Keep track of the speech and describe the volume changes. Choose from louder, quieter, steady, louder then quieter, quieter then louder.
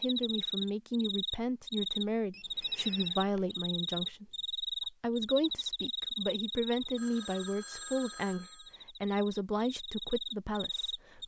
steady.